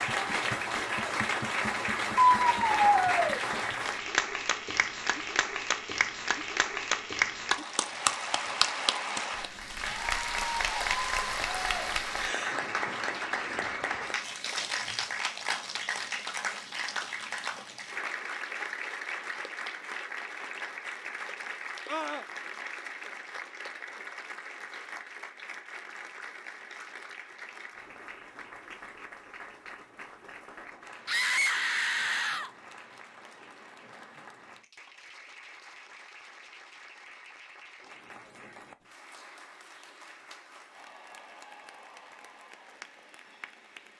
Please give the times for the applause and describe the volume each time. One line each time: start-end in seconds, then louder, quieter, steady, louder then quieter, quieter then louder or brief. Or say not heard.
0.0-43.9 quieter.